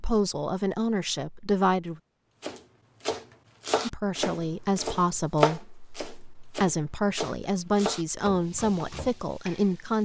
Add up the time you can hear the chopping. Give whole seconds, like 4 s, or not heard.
7 s.